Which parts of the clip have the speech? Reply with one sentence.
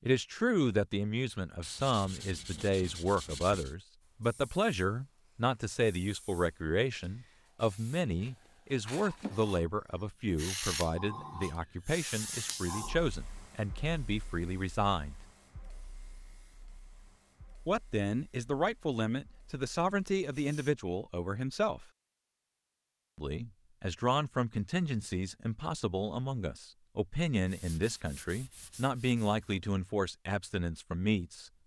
The speech can be heard from 0.0 to 15.2 s, from 17.6 to 21.9 s and from 23.1 to 31.5 s.